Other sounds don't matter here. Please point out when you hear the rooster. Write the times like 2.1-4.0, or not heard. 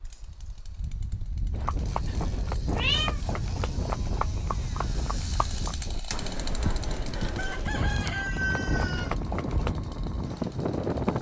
7.3-9.2.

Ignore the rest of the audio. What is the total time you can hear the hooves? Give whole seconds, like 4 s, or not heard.
8 s.